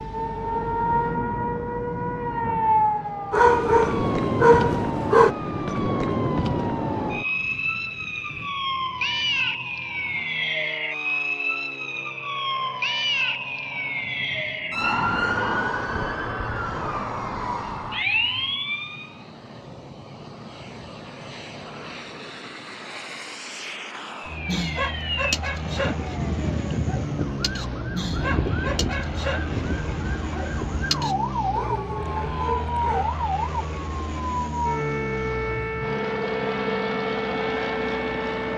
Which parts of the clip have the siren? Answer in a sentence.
You can hear the siren from 0.0 to 19.1 s and from 24.1 to 38.5 s.